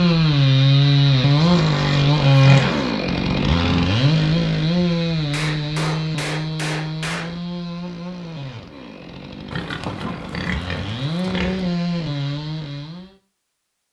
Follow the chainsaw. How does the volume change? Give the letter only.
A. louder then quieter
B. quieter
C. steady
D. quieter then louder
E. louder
D.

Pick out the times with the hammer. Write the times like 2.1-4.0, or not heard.
5.3-7.4.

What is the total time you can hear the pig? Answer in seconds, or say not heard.
4 s.